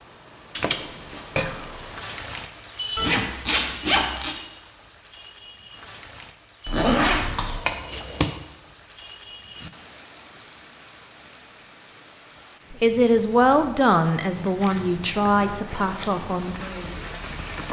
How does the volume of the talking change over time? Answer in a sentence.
The loudness of the talking goes down.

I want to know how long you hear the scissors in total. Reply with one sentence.
The scissors can be heard for 4 seconds in total.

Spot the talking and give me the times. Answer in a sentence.
You can hear the talking from 12.7 to 17.2 s.